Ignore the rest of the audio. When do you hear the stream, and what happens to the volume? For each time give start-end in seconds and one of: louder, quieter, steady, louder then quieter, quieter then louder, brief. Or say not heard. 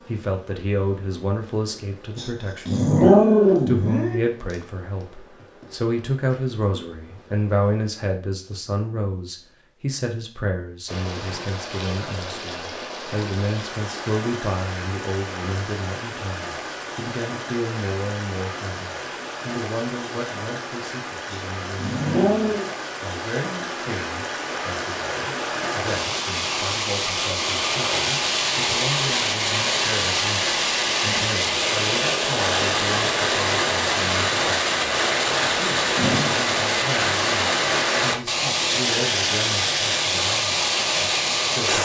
10.8-41.7 louder.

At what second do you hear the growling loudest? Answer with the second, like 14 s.
3 s.